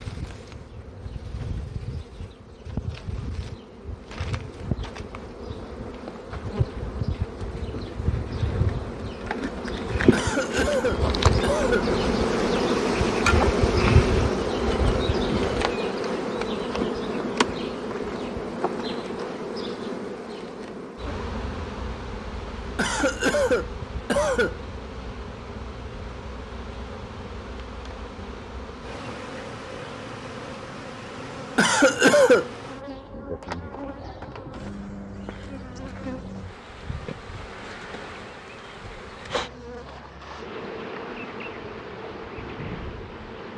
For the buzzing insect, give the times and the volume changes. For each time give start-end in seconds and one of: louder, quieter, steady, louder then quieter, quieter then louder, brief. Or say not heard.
0.0-43.5 louder then quieter.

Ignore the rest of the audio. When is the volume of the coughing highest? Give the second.
32 s.